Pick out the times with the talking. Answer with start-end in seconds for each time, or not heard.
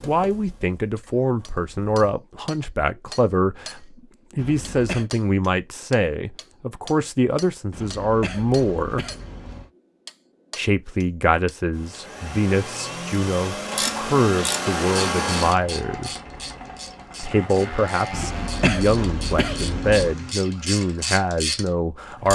0.1-9.1, 10.6-16.1, 17.2-22.3.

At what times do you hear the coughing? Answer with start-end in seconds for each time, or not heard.
4.3-5.1, 7.7-9.7, 18.1-20.1.